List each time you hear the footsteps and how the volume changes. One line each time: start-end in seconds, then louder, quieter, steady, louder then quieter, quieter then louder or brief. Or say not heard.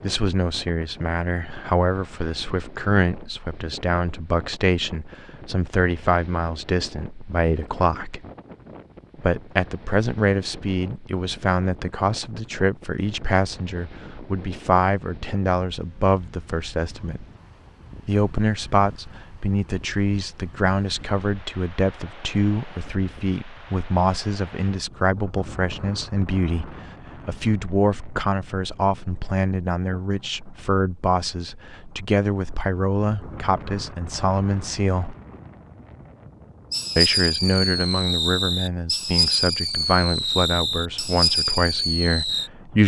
not heard.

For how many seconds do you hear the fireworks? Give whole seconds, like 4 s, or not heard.
6 s.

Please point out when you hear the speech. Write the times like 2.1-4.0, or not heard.
0.0-8.2, 9.2-17.2, 18.1-35.1, 37.0-42.8.